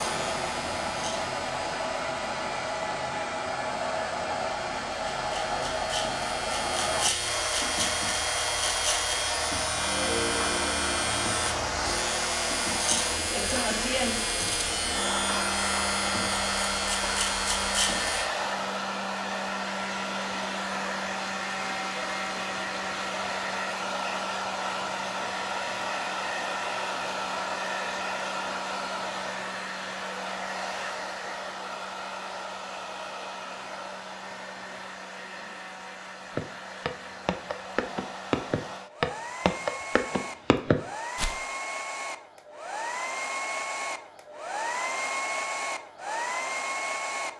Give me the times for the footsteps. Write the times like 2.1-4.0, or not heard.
36.4-41.4.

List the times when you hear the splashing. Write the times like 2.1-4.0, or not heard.
not heard.